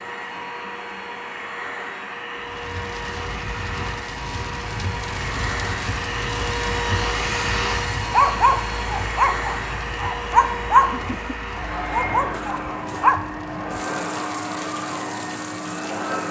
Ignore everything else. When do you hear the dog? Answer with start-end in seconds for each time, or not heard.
8.1-13.2.